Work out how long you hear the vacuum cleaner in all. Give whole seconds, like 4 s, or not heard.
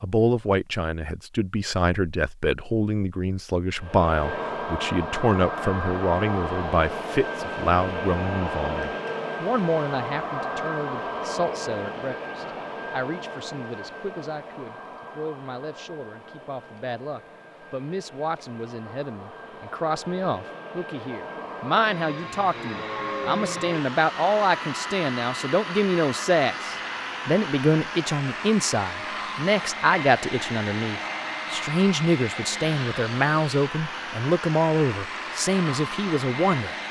33 s.